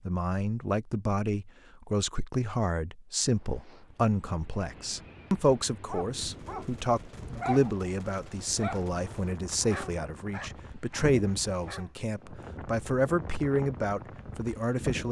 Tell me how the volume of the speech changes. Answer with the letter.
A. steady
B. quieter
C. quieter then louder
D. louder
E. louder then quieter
A.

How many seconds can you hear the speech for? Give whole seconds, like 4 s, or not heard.
15 s.